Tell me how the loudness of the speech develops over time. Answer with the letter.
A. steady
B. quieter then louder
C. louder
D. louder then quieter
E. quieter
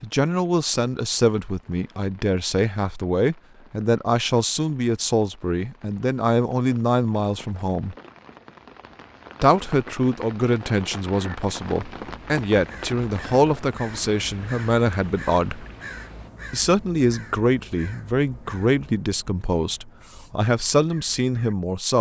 A.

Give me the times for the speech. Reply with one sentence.
The speech can be heard from 0.0 to 8.0 s, from 9.4 to 15.7 s and from 16.5 to 21.9 s.